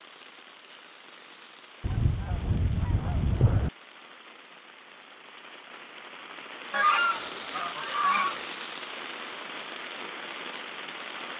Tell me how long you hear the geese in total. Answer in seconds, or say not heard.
4 s.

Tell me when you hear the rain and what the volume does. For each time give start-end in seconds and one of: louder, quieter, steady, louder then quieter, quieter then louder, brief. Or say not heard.
0.0-11.3 louder.